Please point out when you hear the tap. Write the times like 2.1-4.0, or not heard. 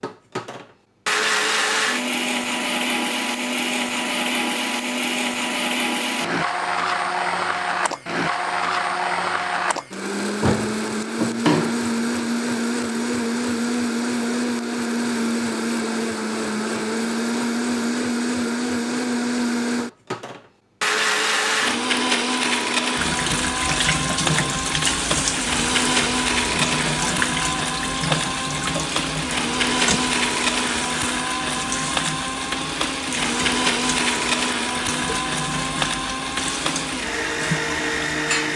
22.9-38.5.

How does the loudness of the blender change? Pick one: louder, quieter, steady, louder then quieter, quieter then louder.
steady.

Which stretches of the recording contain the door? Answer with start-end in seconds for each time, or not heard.
10.4-11.8.